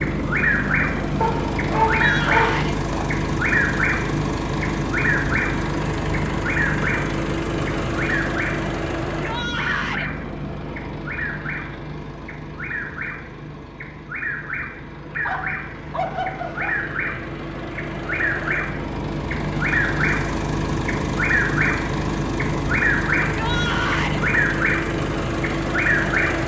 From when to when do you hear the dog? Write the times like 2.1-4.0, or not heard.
1.2-3.0, 15.2-16.9.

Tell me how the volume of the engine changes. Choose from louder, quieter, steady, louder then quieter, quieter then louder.
quieter then louder.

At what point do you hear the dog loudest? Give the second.
2 s.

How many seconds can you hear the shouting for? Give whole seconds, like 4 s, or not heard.
3 s.